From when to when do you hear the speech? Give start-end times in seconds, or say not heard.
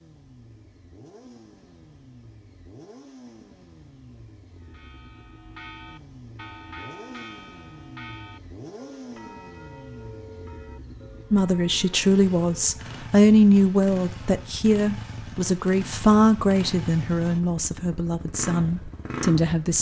11.3-19.7.